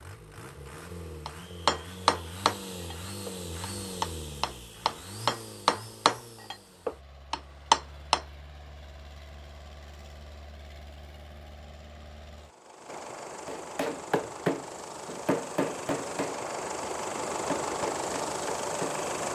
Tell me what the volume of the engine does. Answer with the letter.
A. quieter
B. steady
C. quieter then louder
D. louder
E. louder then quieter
C.